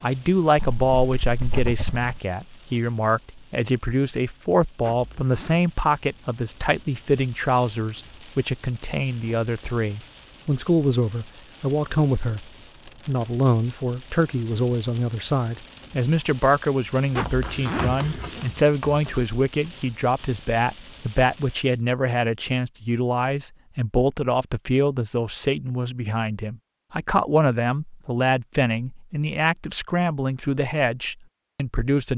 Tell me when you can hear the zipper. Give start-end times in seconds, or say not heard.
4.8-5.6, 17.1-18.6.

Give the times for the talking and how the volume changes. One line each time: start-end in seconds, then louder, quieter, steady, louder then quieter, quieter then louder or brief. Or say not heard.
0.0-32.1 steady.